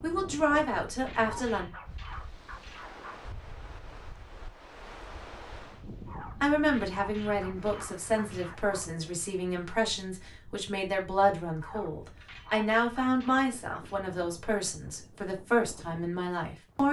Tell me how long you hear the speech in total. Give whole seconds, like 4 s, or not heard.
12 s.